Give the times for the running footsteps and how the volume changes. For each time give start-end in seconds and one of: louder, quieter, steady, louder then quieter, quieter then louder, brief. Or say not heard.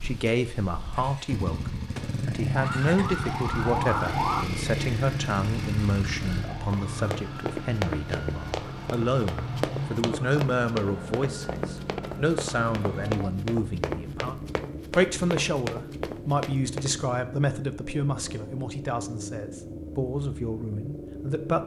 6.7-16.9 steady.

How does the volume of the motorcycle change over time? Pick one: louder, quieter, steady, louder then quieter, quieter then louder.
quieter.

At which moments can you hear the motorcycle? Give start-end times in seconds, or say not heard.
0.0-21.6.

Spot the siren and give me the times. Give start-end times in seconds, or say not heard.
2.5-4.5, 6.2-13.3.